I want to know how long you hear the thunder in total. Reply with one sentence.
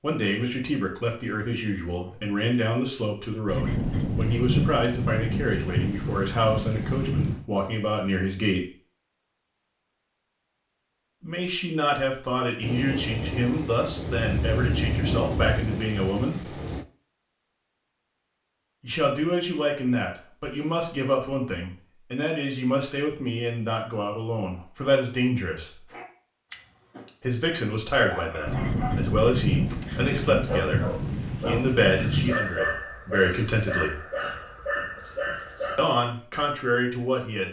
You can hear the thunder for 12 seconds altogether.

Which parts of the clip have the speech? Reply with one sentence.
You can hear the speech from 0.0 to 8.7 s, from 11.2 to 16.6 s, from 18.8 to 25.9 s, from 27.2 to 34.0 s and from 35.8 to 37.4 s.